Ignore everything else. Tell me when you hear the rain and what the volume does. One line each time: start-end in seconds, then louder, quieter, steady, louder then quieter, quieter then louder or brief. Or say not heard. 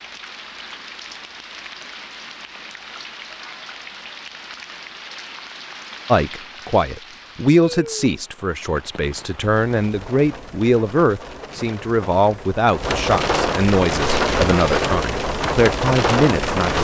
0.0-16.7 louder.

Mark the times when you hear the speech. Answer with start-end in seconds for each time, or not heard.
6.0-16.7.